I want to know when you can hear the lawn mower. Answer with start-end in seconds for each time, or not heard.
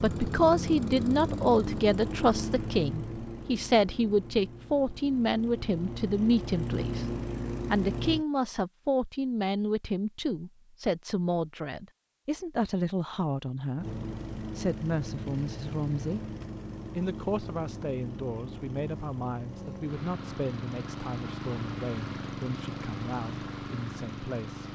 0.0-8.2, 13.8-24.7.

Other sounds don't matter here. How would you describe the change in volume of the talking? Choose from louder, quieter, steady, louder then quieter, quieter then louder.
quieter.